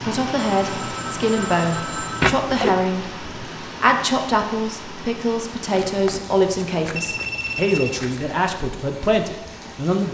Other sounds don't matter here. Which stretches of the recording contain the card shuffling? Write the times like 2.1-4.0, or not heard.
2.2-2.8, 5.7-8.2.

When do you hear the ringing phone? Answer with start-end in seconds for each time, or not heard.
0.3-2.4, 7.0-8.0.